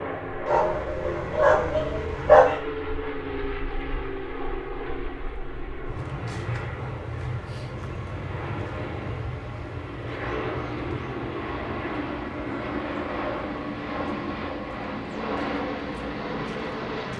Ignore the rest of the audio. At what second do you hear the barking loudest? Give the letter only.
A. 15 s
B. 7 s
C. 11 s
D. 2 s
D.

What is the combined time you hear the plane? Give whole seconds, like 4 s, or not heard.
17 s.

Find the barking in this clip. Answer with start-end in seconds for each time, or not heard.
0.5-2.6.